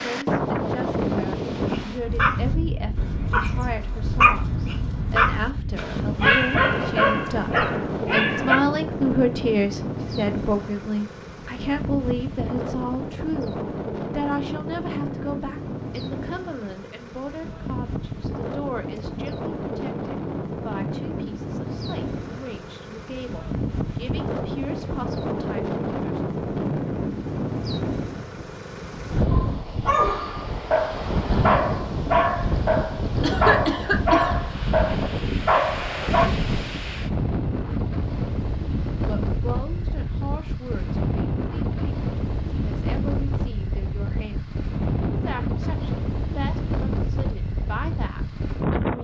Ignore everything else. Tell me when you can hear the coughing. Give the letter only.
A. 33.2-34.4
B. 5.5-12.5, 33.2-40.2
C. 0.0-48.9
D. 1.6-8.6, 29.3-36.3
A.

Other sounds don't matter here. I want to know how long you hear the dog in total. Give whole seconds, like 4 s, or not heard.
14 s.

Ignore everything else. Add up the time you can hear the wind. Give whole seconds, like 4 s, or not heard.
49 s.